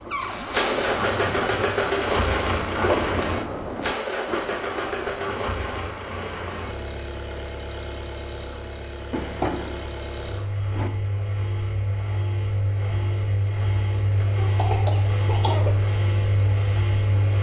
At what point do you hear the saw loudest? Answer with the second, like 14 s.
3 s.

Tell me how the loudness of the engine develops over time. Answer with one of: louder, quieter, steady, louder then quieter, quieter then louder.
quieter then louder.